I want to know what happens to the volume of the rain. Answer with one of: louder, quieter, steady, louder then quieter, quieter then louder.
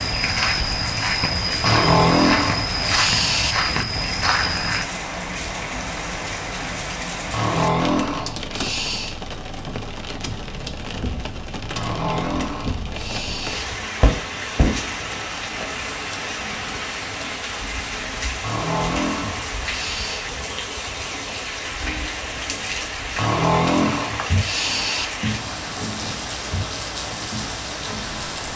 steady.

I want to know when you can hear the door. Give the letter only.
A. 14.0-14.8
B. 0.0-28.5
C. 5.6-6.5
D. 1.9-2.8
A.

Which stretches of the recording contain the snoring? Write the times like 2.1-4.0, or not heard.
1.6-3.5, 7.3-9.2, 11.8-13.7, 18.4-20.2, 23.1-25.1.